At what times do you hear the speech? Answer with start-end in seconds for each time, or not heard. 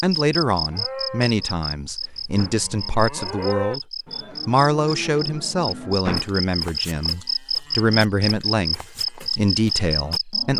0.0-3.8, 4.5-10.5.